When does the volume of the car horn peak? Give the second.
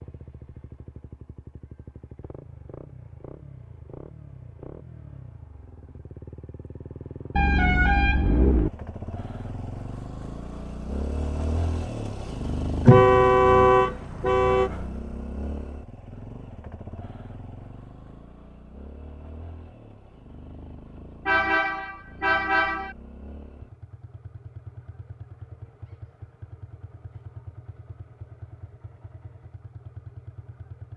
13 s.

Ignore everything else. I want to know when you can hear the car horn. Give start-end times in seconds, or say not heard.
7.3-8.7, 12.8-14.7, 21.2-22.9.